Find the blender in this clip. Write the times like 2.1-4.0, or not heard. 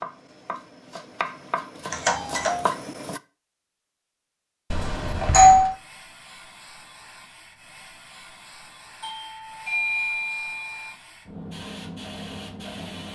not heard.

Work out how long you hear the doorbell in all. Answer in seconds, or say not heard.
4 s.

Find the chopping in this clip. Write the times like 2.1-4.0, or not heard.
0.0-3.2.